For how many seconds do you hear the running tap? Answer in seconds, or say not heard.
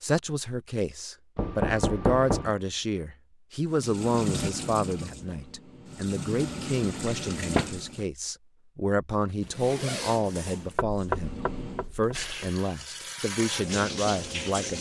8 s.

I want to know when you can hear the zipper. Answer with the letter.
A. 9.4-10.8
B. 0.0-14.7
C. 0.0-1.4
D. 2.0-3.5
A.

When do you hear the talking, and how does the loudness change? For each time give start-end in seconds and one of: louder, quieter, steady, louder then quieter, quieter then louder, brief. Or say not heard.
0.0-14.7 steady.